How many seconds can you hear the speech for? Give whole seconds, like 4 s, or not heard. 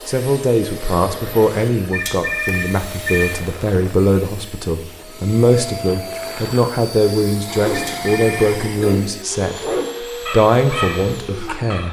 11 s.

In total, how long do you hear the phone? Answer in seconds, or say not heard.
2 s.